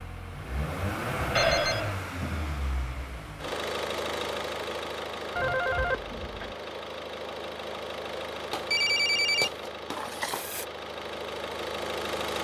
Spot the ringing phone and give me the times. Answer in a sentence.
You can hear the ringing phone from 1.4 to 2.0 s, from 5.3 to 6.5 s and from 8.5 to 10.7 s.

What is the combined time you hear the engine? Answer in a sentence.
The engine can be heard for 12 seconds in total.